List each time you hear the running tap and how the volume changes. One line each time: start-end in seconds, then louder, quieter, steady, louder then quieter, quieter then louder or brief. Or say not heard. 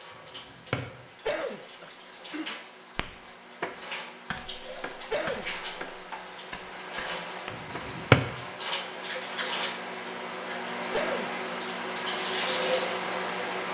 0.0-13.6 louder.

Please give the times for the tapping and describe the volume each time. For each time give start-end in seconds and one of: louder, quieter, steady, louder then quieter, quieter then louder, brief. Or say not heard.
3.0-7.8 quieter.